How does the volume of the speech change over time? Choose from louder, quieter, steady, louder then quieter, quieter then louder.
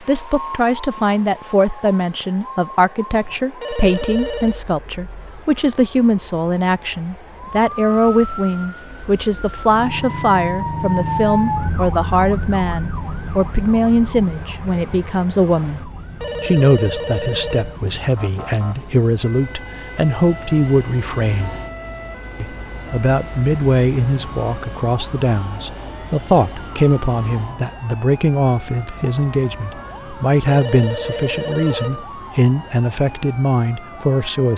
steady.